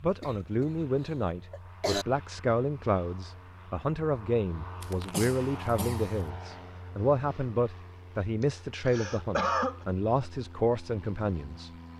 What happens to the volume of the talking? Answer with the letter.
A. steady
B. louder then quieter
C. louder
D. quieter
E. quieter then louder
A.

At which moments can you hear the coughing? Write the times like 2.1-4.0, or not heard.
0.2-0.7, 1.5-2.0, 4.8-6.1, 8.4-9.8.